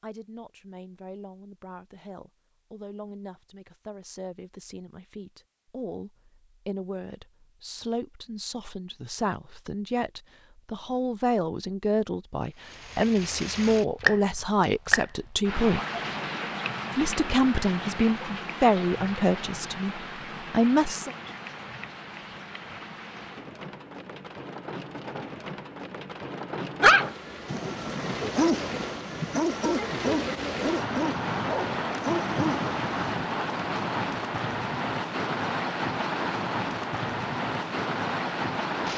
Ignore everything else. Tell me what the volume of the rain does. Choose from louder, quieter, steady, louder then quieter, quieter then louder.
quieter then louder.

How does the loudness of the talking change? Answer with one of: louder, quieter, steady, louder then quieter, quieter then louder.
louder.